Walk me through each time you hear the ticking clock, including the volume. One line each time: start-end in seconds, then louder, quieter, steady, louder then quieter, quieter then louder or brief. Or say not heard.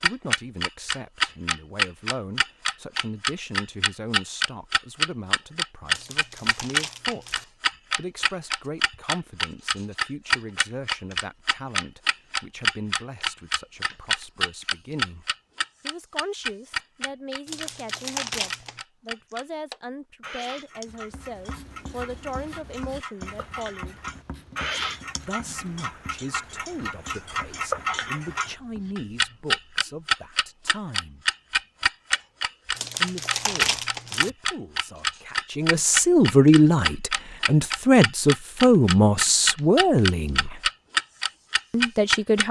0.0-42.4 quieter then louder.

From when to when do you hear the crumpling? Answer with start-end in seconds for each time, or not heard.
5.9-7.5, 17.4-18.8, 32.8-34.3.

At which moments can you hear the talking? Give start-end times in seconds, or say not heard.
0.0-23.9, 25.2-31.2, 33.0-40.7, 41.7-42.4.